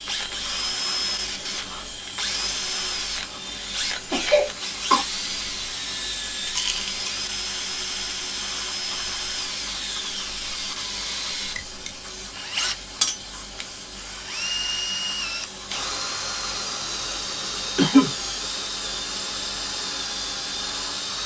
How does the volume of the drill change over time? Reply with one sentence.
The loudness of the drill stays about the same.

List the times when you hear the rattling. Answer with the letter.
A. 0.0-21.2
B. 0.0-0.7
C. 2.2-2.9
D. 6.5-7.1
D.